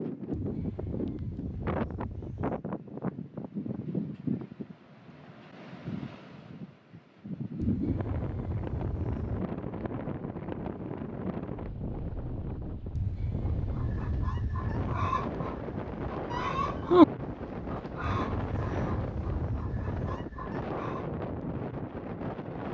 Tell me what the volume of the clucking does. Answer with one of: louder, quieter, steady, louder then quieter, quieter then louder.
louder then quieter.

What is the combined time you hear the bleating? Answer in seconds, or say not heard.
8 s.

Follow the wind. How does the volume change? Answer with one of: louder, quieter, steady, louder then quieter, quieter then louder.
steady.